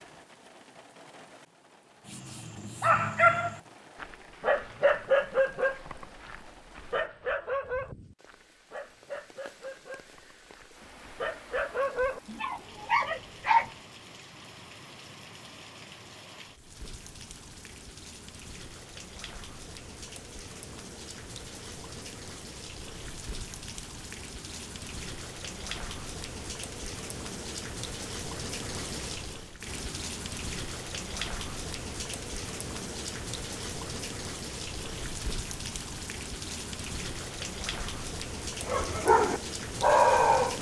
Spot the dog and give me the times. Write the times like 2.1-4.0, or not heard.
2.0-13.7, 38.6-40.5.